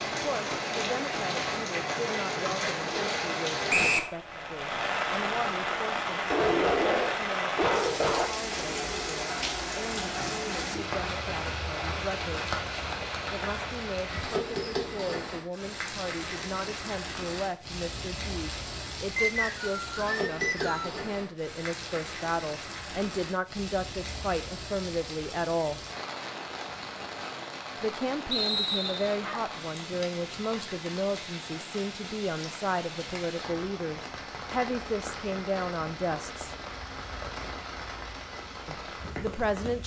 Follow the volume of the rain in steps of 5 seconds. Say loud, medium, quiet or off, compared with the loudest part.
loud, loud, loud, medium, medium, medium, medium, medium.